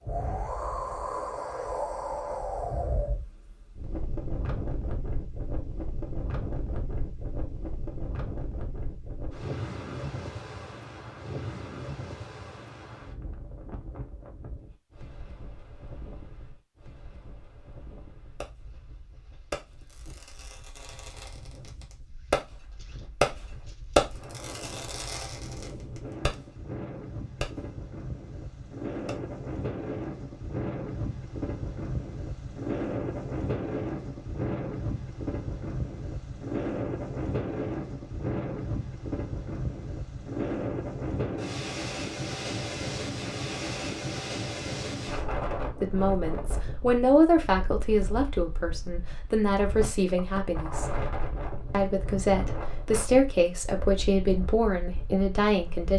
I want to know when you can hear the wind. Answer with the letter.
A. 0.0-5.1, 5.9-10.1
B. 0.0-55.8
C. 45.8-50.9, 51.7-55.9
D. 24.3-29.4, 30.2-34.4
B.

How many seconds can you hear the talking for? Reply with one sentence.
The talking can be heard for 9 seconds in total.